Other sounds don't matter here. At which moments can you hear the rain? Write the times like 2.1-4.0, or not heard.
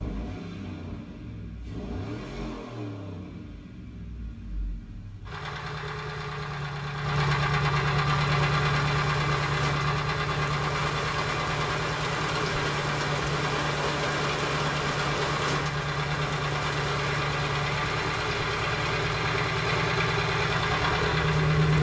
8.1-21.7.